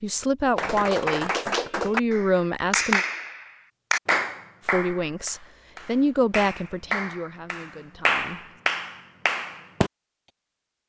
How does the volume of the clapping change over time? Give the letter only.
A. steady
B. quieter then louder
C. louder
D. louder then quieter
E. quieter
B.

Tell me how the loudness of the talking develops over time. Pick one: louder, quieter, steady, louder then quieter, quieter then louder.
quieter.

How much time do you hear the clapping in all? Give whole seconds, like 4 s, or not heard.
9 s.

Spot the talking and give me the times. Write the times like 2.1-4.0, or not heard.
0.0-3.0, 4.7-8.4.